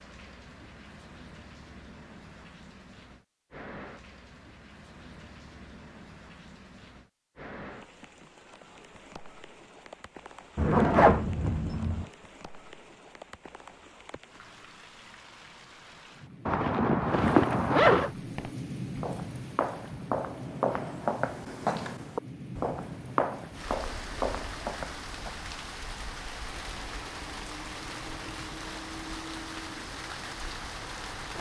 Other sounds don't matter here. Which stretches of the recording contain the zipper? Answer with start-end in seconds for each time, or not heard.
10.6-12.1, 16.4-18.1.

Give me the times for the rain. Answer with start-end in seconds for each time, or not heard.
0.0-31.3.